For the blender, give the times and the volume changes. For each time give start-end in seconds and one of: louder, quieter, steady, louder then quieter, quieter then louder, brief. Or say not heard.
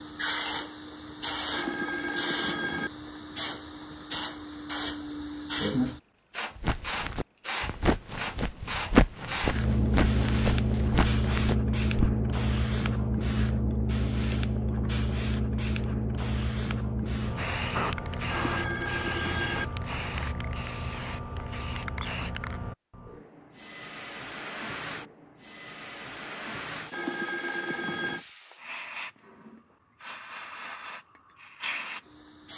not heard.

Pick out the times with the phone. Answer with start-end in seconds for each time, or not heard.
1.5-2.9, 18.2-19.6, 26.9-28.2.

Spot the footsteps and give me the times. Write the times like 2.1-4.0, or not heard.
6.5-12.2.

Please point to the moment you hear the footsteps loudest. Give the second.
9 s.